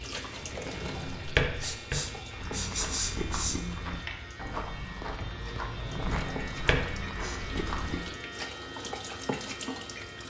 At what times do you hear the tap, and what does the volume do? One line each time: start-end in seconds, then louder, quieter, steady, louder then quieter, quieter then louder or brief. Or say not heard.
0.0-10.2 quieter then louder.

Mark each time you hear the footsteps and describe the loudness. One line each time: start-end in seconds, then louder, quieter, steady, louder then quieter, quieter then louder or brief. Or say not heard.
2.4-8.1 steady.